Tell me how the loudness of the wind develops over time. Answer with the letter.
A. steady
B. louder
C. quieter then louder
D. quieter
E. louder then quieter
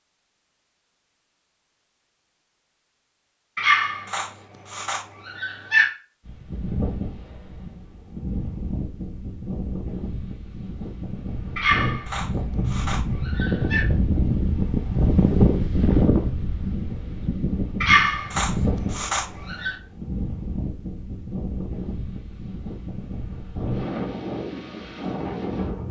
E.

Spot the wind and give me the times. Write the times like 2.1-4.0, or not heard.
6.2-25.8.